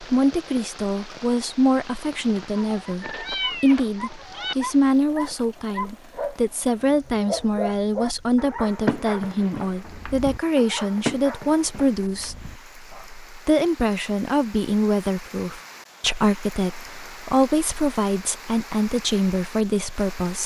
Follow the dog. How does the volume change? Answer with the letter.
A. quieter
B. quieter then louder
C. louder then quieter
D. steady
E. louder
A.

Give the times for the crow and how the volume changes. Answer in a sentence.
The crow can't be heard in this clip.